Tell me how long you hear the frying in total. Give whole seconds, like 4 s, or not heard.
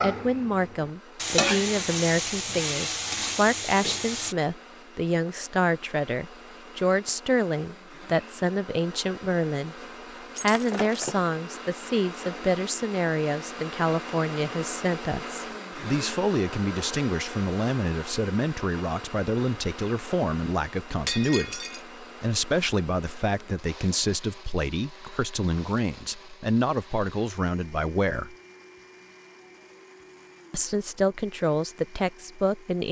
4 s.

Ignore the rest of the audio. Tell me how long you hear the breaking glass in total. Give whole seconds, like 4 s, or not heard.
2 s.